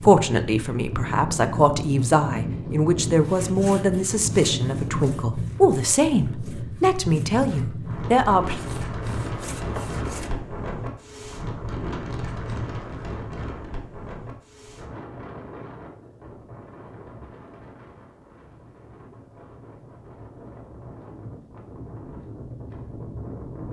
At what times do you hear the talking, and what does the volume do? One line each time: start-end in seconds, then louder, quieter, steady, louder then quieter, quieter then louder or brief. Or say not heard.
0.0-8.6 steady.